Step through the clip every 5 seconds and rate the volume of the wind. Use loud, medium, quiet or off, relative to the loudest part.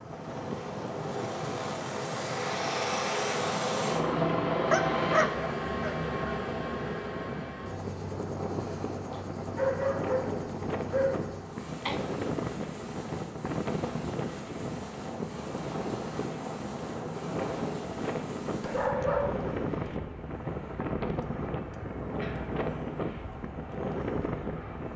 medium, loud, loud, loud, loud.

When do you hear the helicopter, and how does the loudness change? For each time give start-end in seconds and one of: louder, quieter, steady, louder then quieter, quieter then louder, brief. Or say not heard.
0.0-24.9 quieter.